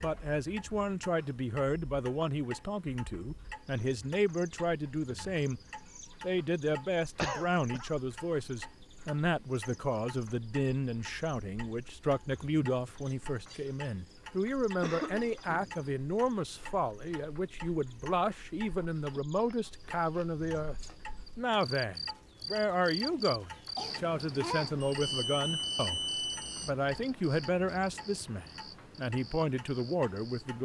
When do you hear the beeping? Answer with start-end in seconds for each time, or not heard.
24.8-26.7.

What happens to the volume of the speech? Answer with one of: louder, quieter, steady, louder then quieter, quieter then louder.
steady.